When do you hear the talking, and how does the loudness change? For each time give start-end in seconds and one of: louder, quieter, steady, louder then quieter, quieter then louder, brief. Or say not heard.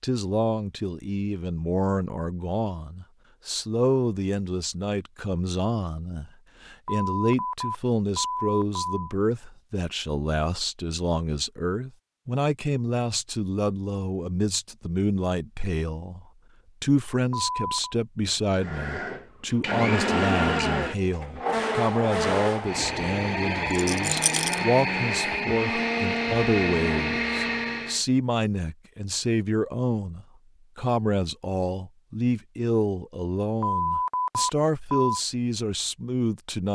0.0-36.7 steady.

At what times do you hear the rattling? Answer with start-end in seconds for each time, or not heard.
23.7-24.6.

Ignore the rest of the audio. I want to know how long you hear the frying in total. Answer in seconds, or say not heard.
not heard.